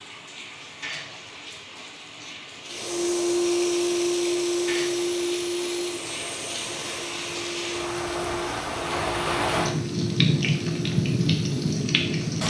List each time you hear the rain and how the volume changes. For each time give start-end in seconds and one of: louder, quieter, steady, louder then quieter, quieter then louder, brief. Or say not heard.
0.0-12.4 louder.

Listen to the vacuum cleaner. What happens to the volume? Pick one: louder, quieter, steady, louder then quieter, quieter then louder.
quieter.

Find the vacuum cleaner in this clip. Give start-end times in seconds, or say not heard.
2.6-12.3.